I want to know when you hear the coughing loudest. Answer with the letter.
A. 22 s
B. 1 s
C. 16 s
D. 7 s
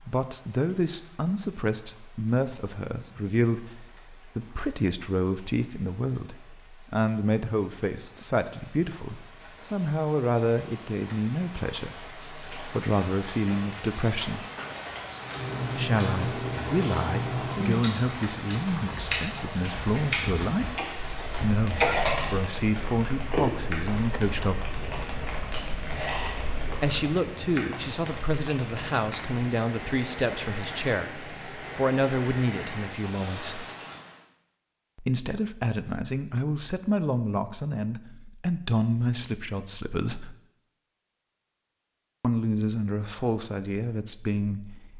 A.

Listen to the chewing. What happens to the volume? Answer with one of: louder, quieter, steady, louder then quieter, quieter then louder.
quieter.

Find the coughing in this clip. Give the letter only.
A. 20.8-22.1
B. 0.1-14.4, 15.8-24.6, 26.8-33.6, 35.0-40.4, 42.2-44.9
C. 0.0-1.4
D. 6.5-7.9
A.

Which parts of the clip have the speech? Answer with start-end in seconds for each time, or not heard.
0.1-14.4, 15.8-24.6, 26.8-33.6, 35.0-40.4, 42.2-44.9.